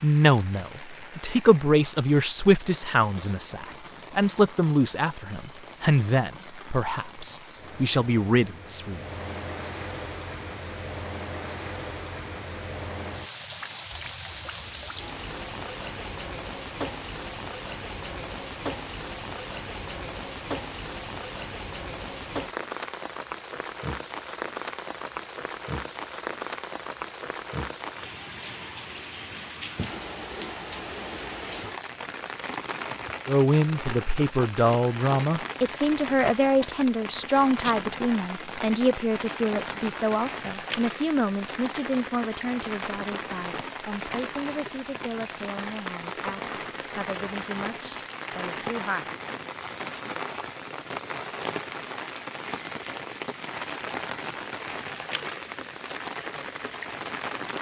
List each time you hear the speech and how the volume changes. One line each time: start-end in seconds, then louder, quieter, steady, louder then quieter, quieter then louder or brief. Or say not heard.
0.0-9.0 steady
33.2-49.1 quieter.